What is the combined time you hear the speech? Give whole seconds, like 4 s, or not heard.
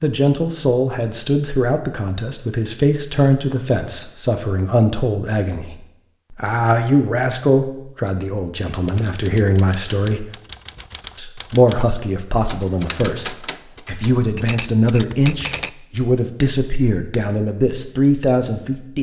18 s.